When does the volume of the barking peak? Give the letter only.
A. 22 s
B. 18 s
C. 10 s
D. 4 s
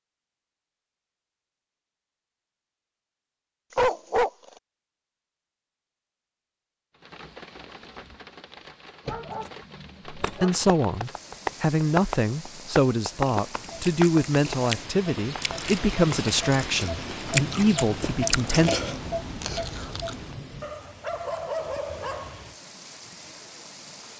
D.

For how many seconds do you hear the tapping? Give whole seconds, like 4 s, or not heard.
6 s.